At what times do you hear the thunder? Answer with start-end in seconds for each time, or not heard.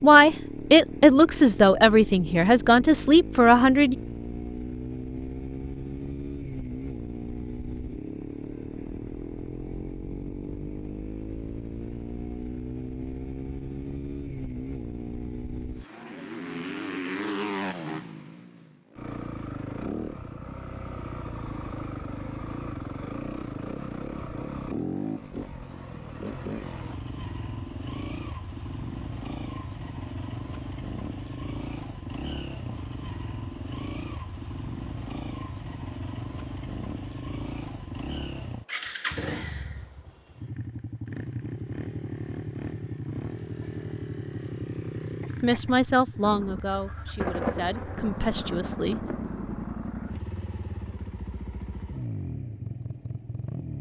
47.1-49.6.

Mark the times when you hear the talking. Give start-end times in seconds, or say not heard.
0.0-4.0, 45.4-49.0.